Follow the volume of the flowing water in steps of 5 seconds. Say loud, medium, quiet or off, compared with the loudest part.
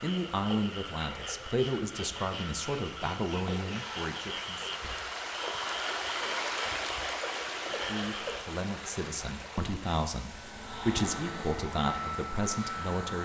medium, loud, quiet.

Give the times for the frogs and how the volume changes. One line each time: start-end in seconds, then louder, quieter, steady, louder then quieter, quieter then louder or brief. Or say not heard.
0.0-8.6 steady.